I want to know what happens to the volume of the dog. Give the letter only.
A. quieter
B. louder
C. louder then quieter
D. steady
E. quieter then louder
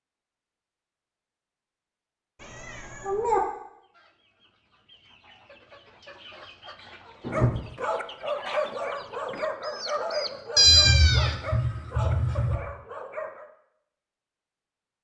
A.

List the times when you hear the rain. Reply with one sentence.
You can't hear the rain here.